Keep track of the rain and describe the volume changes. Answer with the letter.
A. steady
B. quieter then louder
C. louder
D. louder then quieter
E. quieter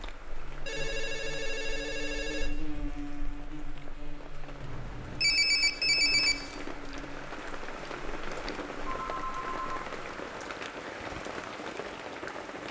C.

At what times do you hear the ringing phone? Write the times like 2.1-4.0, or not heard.
0.7-2.5, 4.6-6.7, 8.8-9.8.